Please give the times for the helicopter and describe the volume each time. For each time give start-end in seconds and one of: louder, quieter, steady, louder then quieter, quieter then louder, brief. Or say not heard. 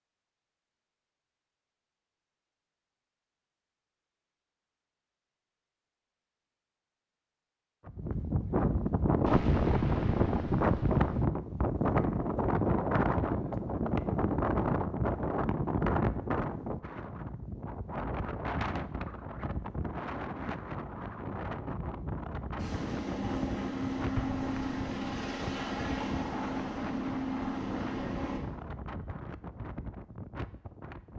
22.6-28.4 steady.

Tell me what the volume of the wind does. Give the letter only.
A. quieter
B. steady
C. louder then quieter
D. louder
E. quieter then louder
A.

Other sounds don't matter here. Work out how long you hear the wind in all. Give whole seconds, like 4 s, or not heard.
23 s.